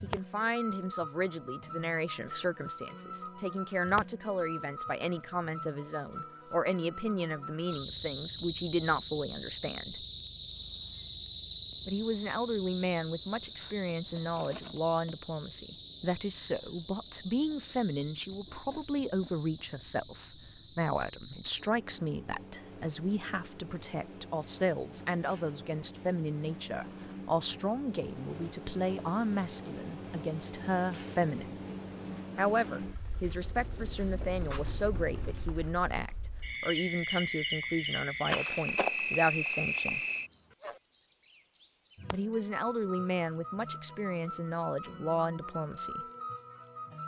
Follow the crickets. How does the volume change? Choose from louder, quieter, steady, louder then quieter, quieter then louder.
quieter then louder.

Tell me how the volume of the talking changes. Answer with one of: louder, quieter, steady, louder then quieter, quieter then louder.
steady.